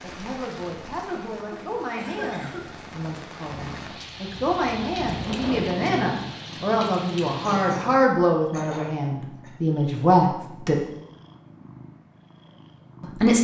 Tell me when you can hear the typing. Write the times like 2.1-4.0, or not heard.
not heard.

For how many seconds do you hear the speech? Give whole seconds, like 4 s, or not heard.
11 s.